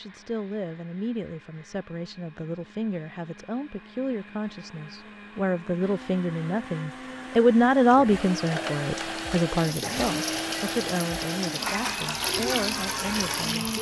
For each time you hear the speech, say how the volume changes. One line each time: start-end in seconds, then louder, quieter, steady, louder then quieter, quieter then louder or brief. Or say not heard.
0.0-13.7 louder then quieter.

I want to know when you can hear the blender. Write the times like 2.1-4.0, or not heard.
0.0-13.7.